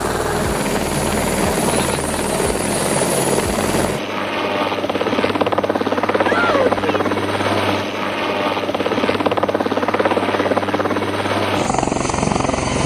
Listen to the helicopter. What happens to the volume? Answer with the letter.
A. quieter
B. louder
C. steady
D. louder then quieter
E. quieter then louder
C.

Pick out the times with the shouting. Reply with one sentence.
You can hear the shouting from 6.2 to 7.2 s.